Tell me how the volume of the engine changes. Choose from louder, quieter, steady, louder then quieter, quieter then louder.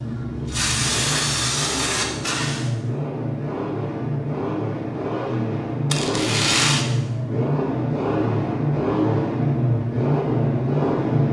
louder.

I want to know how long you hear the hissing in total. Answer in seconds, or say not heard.
3 s.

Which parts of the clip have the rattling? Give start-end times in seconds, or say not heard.
5.9-6.8.